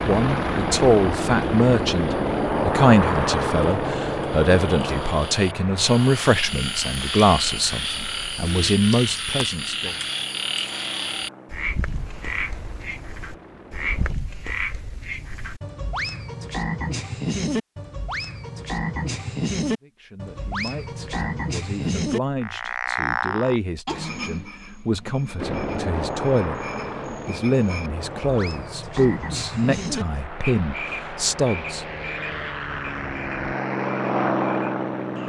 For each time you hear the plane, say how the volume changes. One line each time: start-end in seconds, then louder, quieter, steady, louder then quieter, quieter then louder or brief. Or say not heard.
0.0-14.2 quieter
25.4-35.2 quieter then louder.